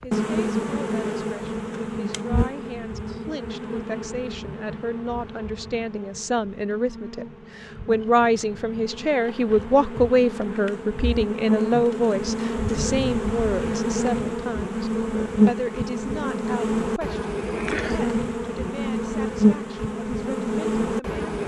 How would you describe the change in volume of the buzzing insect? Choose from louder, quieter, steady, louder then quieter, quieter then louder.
quieter then louder.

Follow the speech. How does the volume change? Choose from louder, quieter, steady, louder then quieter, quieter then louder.
louder then quieter.